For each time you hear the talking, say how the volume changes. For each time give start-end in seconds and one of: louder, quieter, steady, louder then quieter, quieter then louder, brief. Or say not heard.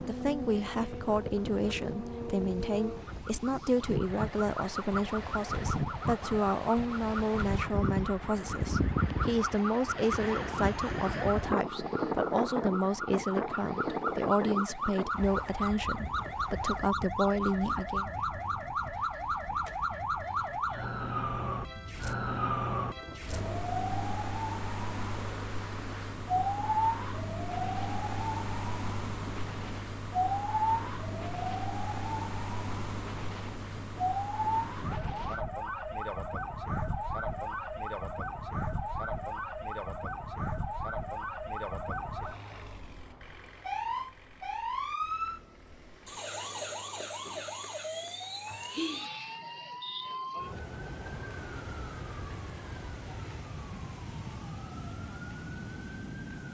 0.0-18.1 steady.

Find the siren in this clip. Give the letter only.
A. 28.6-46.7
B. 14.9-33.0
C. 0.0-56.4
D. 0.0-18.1
C.